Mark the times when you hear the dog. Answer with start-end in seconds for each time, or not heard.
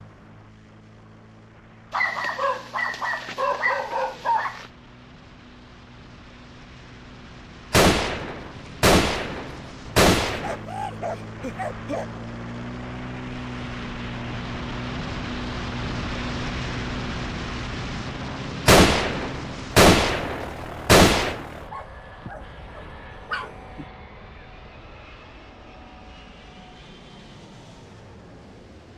1.9-4.7, 10.4-12.1, 21.7-23.9.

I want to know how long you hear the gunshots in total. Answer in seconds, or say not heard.
6 s.